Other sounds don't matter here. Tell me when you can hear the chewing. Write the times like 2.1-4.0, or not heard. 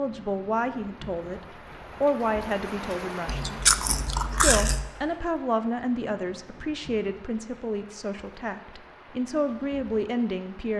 3.2-4.9.